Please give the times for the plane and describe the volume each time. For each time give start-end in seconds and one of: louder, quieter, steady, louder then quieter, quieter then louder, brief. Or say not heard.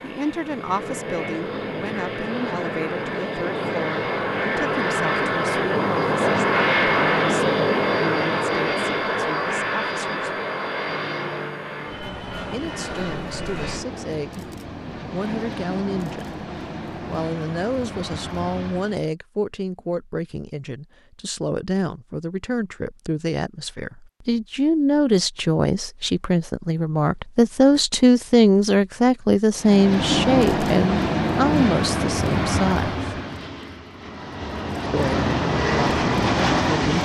0.0-19.1 louder then quieter
29.6-37.0 quieter then louder.